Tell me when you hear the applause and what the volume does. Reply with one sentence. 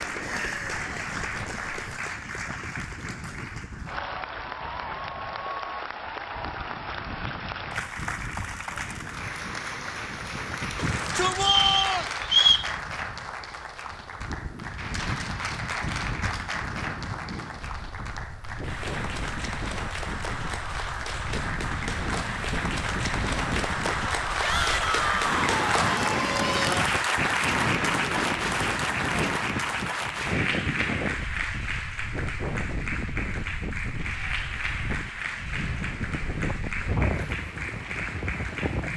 You can hear the applause from 0.0 to 38.9 s, getting louder then quieter.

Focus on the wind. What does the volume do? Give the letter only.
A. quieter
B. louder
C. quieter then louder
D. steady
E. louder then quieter
B.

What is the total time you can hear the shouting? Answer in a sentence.
You can hear the shouting for 3 seconds altogether.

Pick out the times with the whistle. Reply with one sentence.
The whistle can be heard from 11.4 to 12.7 s.